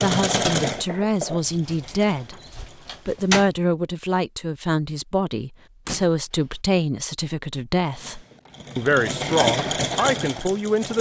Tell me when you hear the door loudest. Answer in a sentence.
The loudest moment of the door is at 3 seconds.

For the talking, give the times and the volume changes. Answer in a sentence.
You can hear the talking briefly from 0.0 to 2.4 s; and from 3.0 to 10.9 s, at a steady volume.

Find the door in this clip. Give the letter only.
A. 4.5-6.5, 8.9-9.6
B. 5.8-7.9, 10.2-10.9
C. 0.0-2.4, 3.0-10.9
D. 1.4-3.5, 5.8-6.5
D.